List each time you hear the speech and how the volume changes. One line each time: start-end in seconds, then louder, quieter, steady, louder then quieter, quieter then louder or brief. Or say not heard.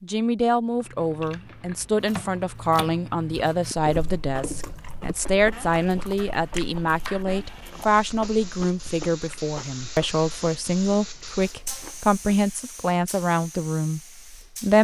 0.0-14.7 steady.